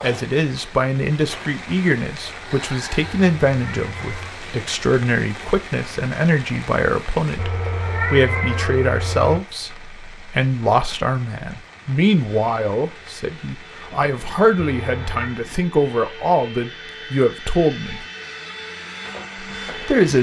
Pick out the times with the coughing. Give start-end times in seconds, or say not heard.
not heard.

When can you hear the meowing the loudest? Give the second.
8 s.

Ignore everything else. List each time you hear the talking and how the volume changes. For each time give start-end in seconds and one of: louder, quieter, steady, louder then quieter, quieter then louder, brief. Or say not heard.
0.0-18.0 steady
19.6-20.1 brief.